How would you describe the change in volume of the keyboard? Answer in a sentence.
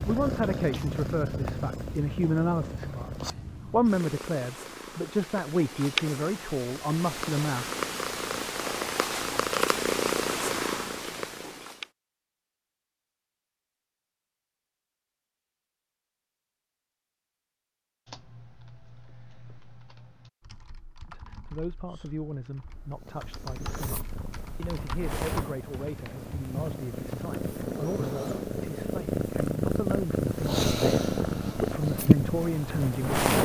The loudness of the keyboard goes up.